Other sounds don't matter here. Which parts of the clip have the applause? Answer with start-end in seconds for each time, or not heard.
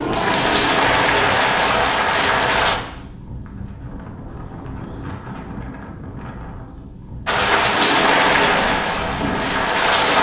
0.0-2.8, 7.2-10.1.